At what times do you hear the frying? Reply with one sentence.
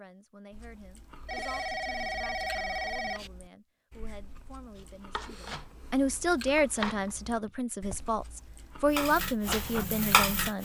The frying can be heard from 8.9 to 10.6 s.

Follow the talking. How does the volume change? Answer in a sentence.
The volume of the talking goes up.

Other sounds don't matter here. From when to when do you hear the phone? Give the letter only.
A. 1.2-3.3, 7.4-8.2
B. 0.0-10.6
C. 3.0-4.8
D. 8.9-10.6
A.